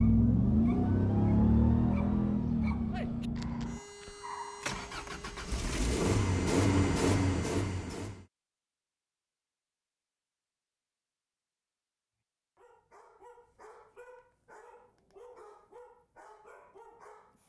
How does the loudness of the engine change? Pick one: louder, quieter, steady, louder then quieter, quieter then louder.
quieter then louder.